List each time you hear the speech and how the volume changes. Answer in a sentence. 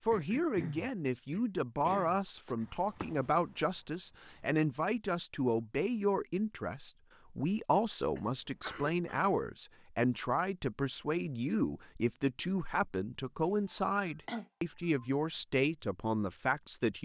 You can hear the speech from 0.1 to 17.0 s, at a steady volume.